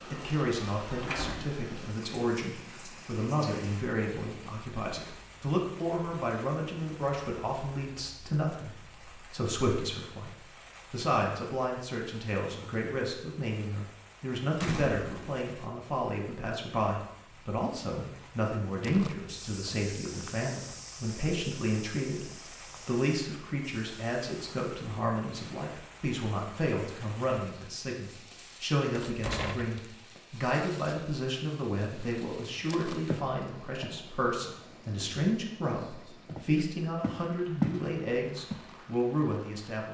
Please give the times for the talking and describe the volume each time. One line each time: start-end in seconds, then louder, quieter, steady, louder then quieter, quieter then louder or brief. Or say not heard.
0.1-39.8 steady.